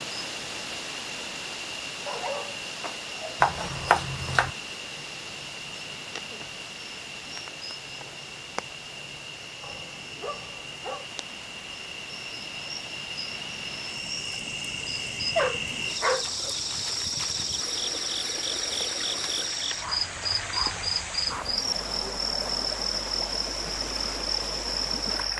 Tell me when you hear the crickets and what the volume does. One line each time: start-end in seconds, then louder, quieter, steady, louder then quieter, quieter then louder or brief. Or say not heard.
0.0-25.3 louder.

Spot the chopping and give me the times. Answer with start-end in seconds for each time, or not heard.
3.4-4.5.